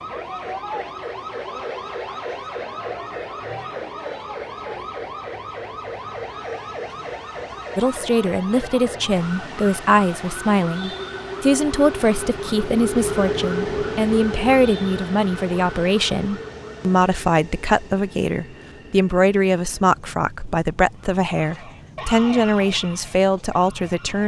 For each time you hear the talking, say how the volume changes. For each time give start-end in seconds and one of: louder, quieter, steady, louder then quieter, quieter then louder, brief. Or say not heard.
7.8-24.2 steady.